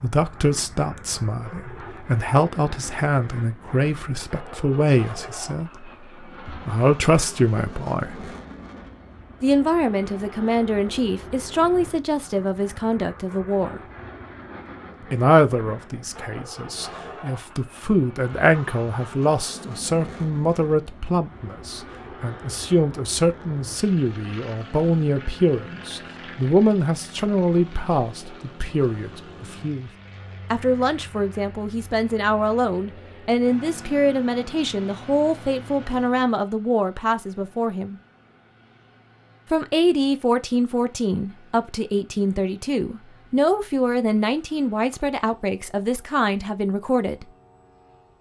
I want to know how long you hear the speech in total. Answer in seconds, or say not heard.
43 s.